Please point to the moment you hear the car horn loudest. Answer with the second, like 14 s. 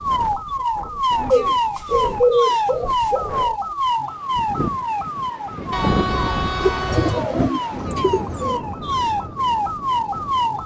6 s.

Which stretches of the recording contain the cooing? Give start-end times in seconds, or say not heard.
1.3-3.5, 6.6-8.6.